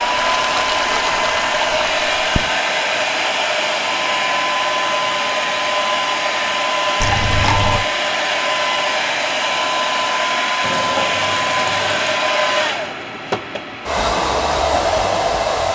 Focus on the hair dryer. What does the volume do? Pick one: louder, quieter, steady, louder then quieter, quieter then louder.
steady.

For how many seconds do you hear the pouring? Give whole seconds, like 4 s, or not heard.
5 s.